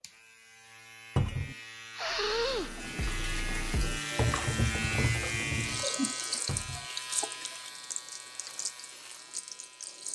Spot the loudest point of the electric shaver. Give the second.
5 s.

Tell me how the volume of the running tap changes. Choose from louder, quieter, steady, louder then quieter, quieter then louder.
louder then quieter.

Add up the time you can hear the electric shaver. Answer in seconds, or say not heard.
10 s.